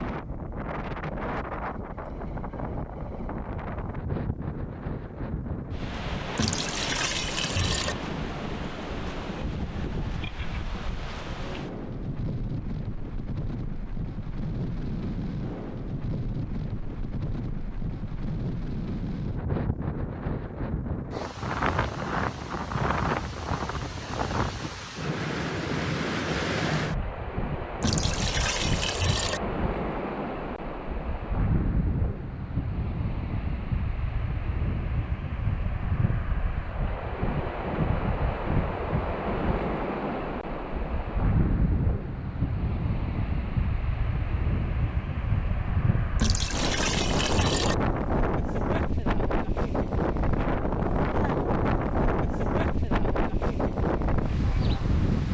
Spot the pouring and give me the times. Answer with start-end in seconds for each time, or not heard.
6.3-8.0, 27.8-29.4, 46.1-47.8.